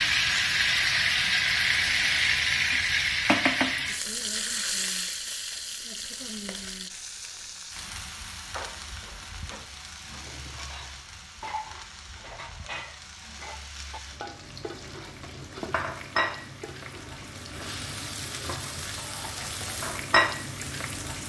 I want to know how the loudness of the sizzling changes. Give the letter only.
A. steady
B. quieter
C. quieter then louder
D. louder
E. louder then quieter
C.